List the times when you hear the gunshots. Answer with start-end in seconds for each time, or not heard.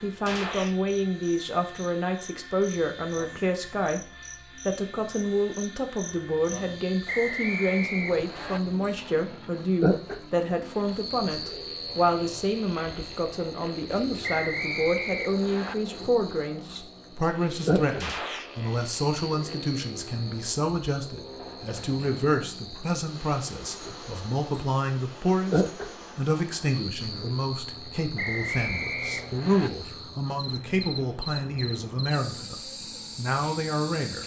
0.2-0.8, 18.0-18.5.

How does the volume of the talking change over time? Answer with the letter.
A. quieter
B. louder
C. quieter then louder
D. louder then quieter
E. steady
E.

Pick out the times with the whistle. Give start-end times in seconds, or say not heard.
7.0-8.6, 14.2-15.8, 28.1-29.7.